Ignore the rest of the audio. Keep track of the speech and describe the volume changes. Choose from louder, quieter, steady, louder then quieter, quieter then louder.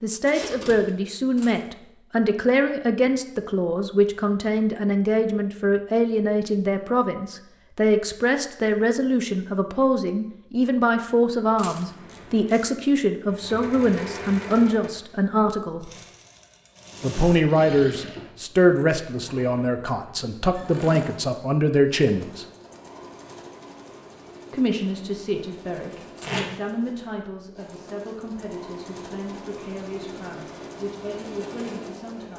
quieter.